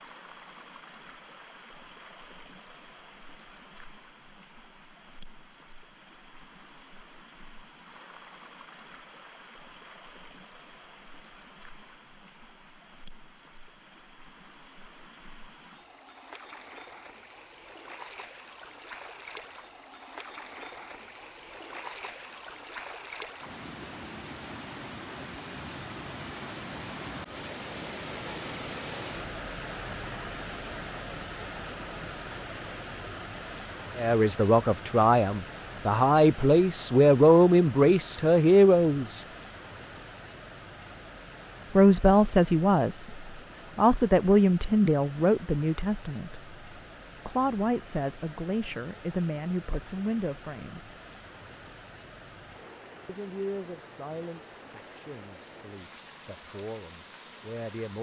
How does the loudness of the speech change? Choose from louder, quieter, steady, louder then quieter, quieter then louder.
quieter.